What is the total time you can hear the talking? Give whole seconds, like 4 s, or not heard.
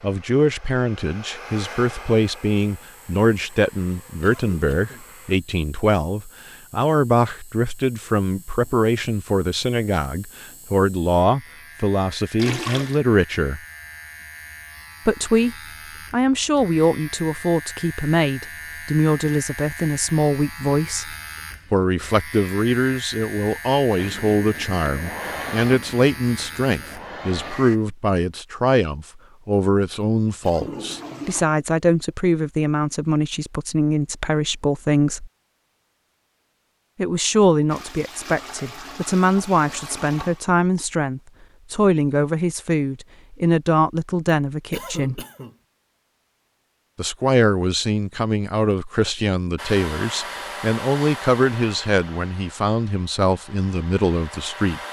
50 s.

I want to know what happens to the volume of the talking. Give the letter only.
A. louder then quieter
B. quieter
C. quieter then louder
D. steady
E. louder
D.